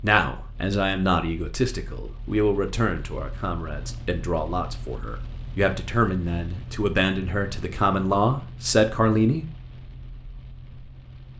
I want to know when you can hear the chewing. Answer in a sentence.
The chewing can't be heard in this clip.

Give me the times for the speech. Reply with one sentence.
You can hear the speech from 0.0 to 9.4 s.